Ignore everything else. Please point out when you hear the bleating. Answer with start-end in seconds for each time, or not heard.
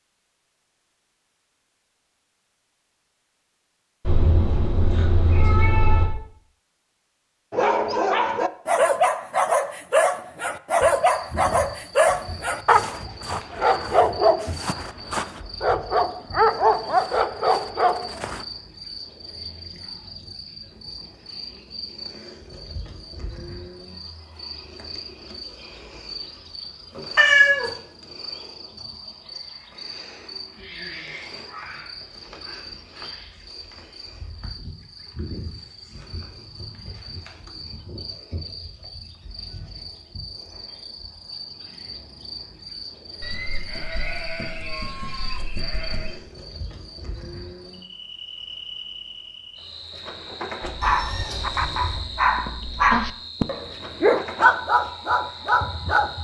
43.2-46.1.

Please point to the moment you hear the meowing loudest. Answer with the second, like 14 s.
27 s.